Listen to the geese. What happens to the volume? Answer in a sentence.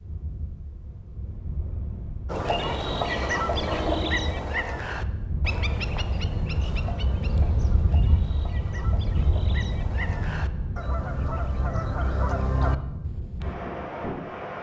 The volume of the geese goes down, then up.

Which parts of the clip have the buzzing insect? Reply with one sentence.
The buzzing insect can't be heard in this clip.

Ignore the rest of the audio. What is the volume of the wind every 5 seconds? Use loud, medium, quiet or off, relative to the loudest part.
medium, loud, loud.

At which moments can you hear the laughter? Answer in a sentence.
You can hear the laughter from 3.0 to 4.2 s.